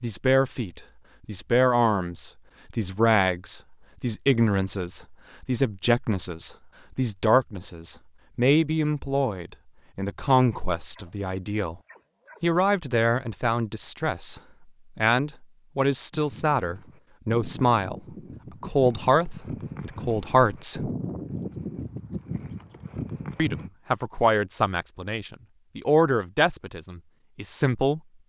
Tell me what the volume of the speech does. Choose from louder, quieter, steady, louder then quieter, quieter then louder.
steady.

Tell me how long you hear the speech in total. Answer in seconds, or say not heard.
25 s.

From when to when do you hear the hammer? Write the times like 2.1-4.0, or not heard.
not heard.